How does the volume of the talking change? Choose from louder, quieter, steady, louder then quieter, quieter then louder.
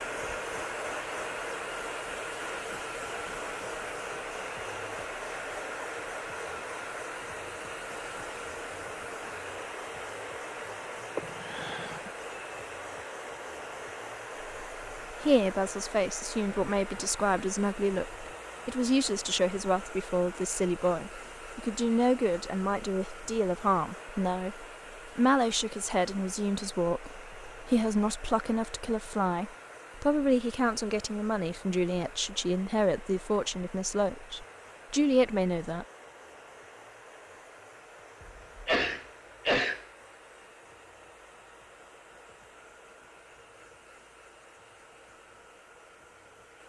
steady.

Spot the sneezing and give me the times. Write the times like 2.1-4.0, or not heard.
11.2-12.1, 38.2-39.9.